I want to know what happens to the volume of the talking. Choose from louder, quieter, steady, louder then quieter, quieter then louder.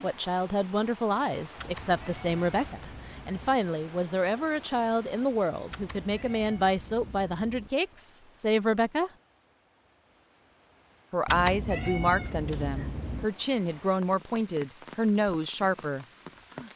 steady.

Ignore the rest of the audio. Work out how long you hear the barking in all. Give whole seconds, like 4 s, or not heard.
not heard.